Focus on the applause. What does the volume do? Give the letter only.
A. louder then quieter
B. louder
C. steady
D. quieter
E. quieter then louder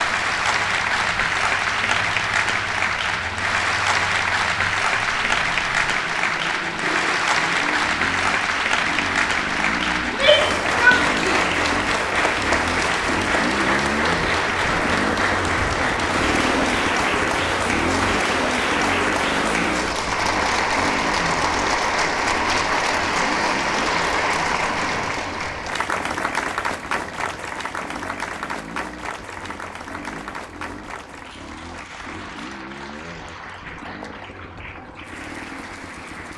D.